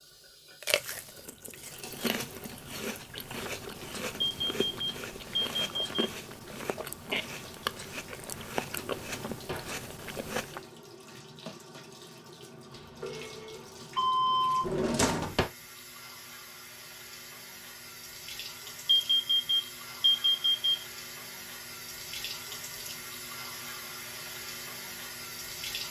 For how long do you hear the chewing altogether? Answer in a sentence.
You can hear the chewing for 10 seconds altogether.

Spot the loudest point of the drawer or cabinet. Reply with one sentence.
The loudest moment of the drawer or cabinet is at 15 seconds.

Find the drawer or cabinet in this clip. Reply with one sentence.
You can hear the drawer or cabinet from 8.8 to 9.8 s and from 14.6 to 15.5 s.